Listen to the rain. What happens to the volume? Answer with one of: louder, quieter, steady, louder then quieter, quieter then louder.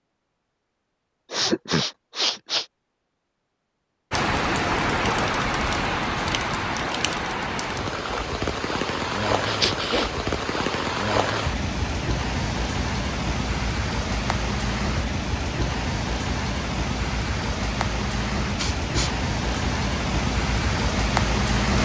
steady.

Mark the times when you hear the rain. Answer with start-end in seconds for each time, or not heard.
4.1-21.7.